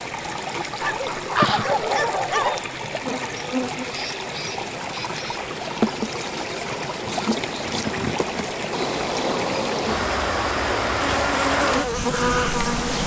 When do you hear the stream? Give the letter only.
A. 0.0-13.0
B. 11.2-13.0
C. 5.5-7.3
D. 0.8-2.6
A.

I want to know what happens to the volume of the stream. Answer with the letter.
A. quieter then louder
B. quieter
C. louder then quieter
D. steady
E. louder
D.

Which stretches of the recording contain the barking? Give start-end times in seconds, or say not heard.
0.8-2.6.